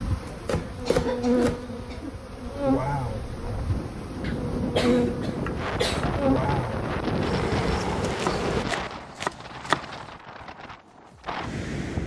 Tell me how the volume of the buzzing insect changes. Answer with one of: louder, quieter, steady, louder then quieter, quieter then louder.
steady.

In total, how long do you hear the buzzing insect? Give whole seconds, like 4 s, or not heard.
9 s.